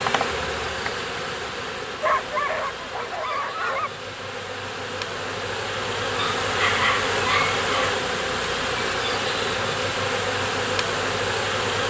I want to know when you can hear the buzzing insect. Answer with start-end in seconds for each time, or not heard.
0.0-11.8.